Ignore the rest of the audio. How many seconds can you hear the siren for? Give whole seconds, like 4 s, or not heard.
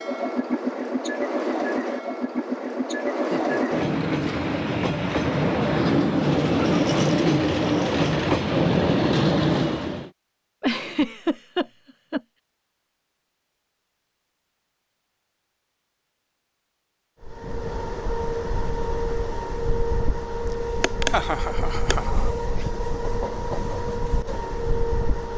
not heard.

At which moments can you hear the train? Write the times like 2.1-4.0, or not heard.
0.0-10.1, 17.2-25.3.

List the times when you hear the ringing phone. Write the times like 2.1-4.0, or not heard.
not heard.